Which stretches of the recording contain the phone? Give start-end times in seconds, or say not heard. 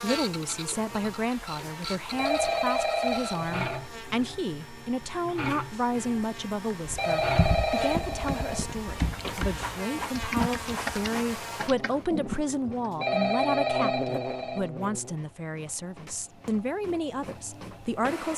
2.1-3.9, 7.0-8.7, 13.0-14.7.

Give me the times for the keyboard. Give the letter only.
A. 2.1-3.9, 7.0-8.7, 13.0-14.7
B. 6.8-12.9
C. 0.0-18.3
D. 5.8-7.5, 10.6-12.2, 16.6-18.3
B.